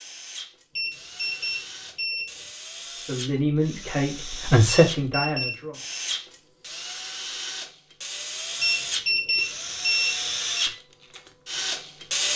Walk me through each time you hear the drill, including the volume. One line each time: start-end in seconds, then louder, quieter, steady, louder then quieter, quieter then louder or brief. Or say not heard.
0.0-12.3 louder.